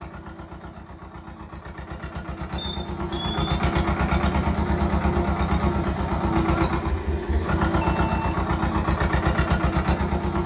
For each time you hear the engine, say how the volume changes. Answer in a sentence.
You can hear the engine from 0.0 to 10.4 s, getting louder.